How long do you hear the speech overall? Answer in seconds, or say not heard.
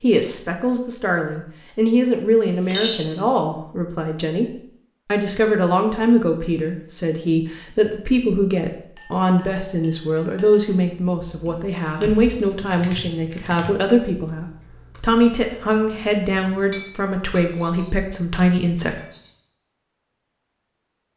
19 s.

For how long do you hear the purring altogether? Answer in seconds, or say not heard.
not heard.